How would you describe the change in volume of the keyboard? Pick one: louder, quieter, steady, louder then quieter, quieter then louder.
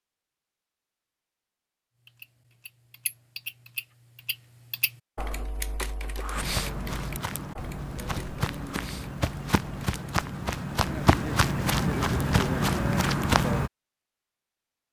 louder then quieter.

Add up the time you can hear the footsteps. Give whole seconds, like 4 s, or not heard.
7 s.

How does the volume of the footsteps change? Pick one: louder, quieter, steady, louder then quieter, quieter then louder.
louder.